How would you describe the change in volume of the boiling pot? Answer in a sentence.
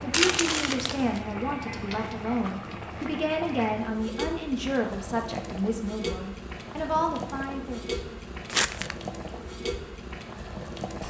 The volume of the boiling pot stays about the same.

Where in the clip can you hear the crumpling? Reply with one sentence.
You can hear the crumpling from 0.1 to 1.2 s and from 8.4 to 8.9 s.